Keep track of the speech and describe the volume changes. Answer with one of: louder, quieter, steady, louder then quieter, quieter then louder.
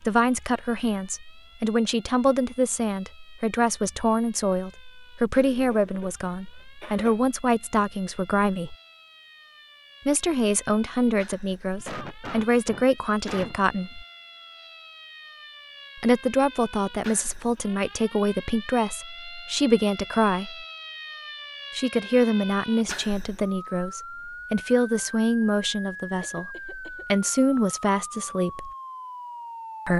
steady.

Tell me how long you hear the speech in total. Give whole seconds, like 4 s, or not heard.
24 s.